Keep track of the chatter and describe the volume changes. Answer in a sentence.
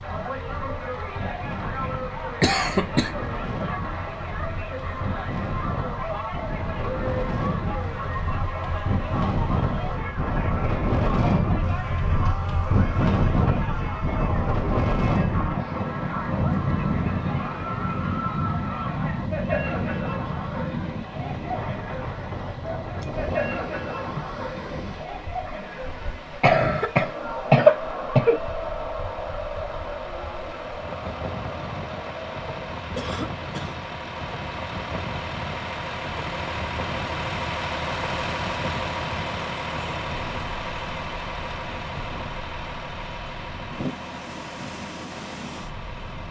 The volume of the chatter stays about the same.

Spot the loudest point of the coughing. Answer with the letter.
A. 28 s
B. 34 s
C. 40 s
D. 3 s
A.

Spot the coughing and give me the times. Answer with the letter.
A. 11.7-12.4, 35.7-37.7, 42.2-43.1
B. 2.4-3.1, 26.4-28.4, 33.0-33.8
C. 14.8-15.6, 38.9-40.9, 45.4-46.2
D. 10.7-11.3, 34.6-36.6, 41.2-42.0
B.